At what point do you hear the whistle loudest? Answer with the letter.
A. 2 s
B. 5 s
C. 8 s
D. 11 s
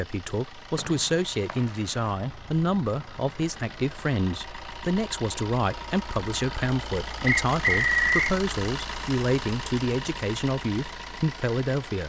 C.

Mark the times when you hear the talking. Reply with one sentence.
You can hear the talking from 0.0 to 12.0 s.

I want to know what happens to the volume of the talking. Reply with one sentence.
The loudness of the talking stays about the same.